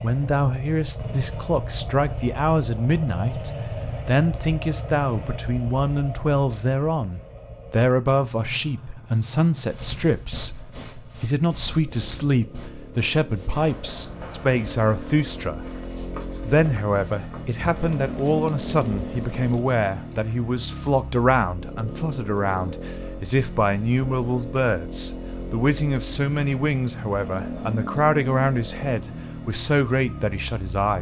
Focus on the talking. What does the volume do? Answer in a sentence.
The volume of the talking stays about the same.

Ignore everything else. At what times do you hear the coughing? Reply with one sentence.
The coughing can't be heard in this clip.